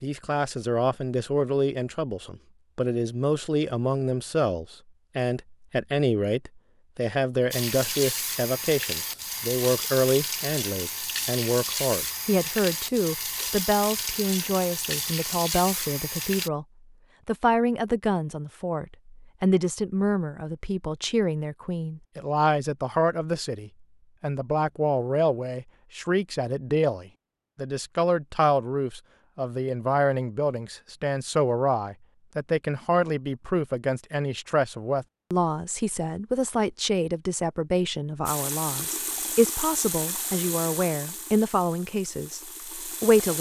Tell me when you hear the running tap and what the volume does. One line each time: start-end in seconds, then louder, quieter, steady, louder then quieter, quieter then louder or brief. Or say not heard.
7.5-16.5 steady
38.2-43.3 quieter.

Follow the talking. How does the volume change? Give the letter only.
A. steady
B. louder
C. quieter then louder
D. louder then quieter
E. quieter
A.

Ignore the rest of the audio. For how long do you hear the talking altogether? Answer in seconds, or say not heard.
43 s.